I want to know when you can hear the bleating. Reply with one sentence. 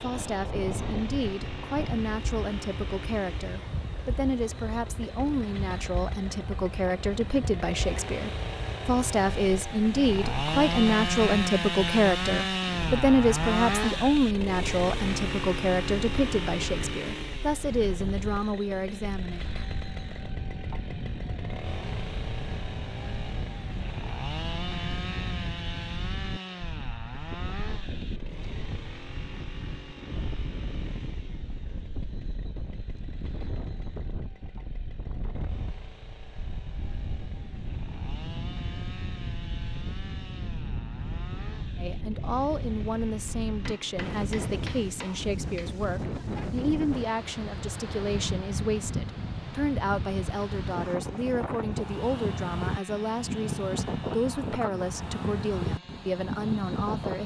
The bleating can't be heard in this clip.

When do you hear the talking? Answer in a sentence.
The talking can be heard from 0.0 to 19.4 s and from 41.8 to 57.2 s.